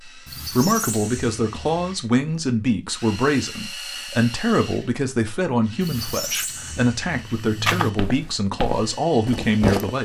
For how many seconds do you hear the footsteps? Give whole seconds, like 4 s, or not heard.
3 s.